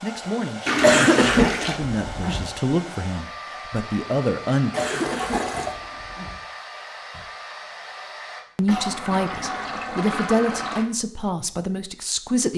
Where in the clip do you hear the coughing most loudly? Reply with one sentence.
The loudest moment of the coughing is at 1 second.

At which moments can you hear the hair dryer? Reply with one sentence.
The hair dryer can be heard from 0.0 to 8.4 s.